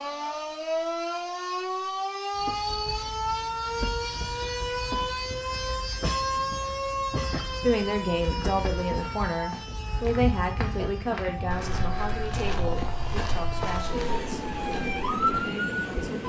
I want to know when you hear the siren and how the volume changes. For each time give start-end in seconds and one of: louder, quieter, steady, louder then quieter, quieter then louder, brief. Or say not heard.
0.0-16.2 quieter then louder.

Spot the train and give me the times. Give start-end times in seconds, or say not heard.
2.3-16.2.